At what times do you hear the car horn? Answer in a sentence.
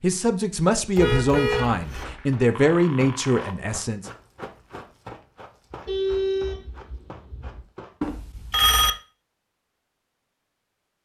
You can hear the car horn from 0.9 to 2.1 s and from 5.8 to 7.6 s.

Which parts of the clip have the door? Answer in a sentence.
The door can't be heard in this clip.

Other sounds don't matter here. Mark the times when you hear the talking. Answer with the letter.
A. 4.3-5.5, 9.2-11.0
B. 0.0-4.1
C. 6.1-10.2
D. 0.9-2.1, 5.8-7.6
B.